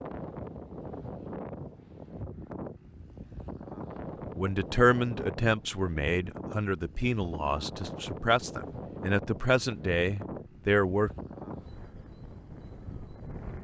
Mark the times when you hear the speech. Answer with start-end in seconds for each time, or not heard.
4.3-11.1.